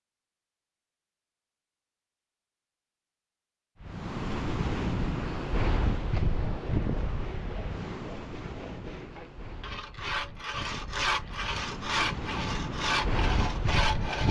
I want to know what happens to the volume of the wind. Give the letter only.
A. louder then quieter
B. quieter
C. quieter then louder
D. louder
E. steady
C.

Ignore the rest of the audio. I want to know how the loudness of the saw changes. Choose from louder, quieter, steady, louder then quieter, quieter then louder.
louder.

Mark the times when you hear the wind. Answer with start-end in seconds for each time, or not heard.
3.8-14.2.